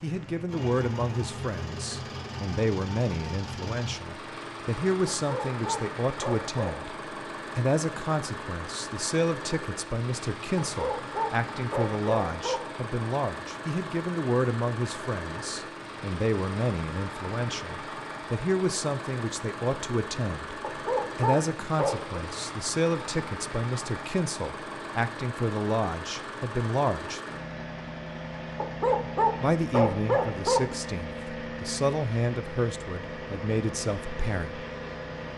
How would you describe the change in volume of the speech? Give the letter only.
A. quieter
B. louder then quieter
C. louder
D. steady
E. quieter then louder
D.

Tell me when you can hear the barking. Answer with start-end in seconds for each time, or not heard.
5.0-6.8, 10.6-12.6, 20.6-22.2, 28.6-30.6.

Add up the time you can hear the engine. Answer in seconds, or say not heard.
35 s.